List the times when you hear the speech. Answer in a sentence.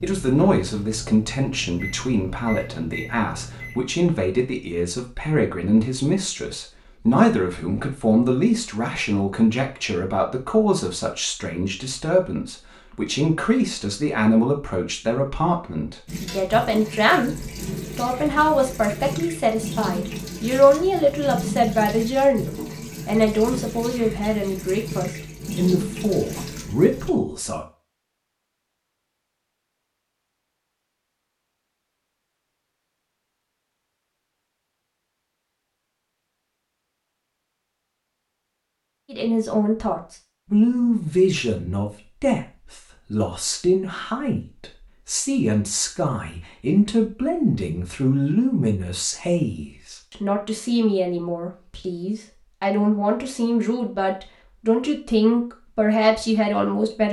You can hear the speech from 0.0 to 27.6 s and from 39.1 to 57.0 s.